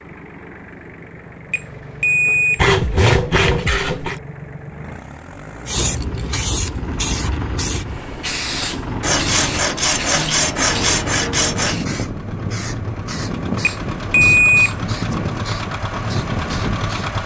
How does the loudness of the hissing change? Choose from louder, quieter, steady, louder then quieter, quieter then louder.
quieter.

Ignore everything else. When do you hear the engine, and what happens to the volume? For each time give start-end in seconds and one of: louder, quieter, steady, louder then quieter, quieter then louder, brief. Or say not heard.
0.0-17.2 louder.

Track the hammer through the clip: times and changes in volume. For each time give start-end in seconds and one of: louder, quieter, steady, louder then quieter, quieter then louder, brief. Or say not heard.
not heard.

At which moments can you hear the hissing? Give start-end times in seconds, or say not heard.
5.7-17.1.